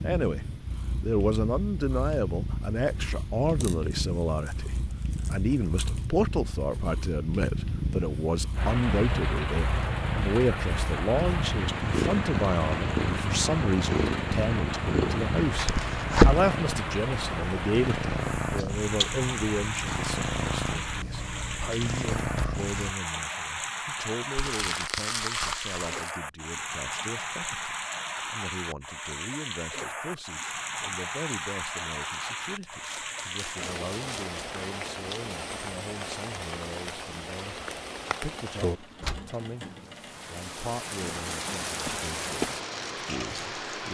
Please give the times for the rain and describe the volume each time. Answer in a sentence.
You can hear the rain from 8.6 to 43.8 s, at a steady volume.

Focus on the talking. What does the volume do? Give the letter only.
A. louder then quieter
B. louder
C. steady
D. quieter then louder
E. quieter
E.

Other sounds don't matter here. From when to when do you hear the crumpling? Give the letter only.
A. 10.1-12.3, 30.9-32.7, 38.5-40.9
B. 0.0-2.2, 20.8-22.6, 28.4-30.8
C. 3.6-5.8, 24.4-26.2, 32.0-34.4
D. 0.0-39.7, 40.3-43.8
C.